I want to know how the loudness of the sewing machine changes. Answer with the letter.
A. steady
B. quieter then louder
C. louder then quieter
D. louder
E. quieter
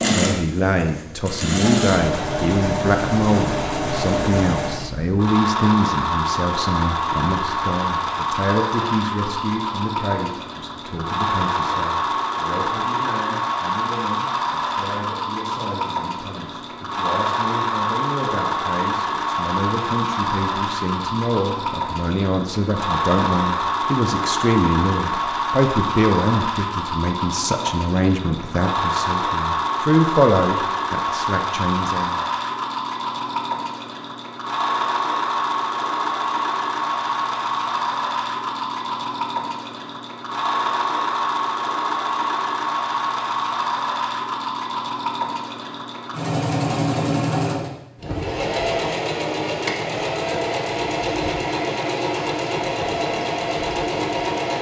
A.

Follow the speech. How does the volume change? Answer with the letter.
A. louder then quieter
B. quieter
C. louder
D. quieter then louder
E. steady
D.